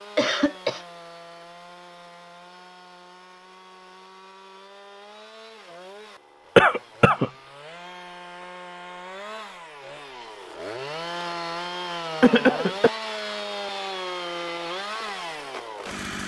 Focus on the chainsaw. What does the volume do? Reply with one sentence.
The loudness of the chainsaw goes up.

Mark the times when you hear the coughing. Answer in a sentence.
The coughing can be heard from 0.1 to 0.8 s, from 6.5 to 7.3 s and from 12.2 to 12.9 s.